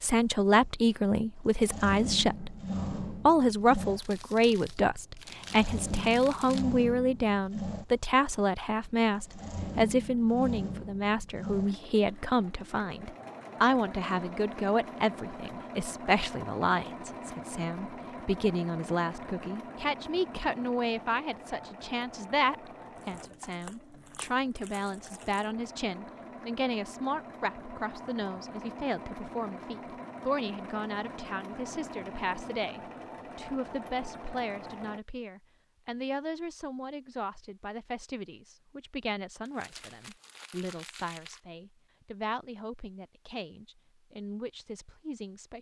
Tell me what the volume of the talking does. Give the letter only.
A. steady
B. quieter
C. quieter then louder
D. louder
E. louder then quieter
B.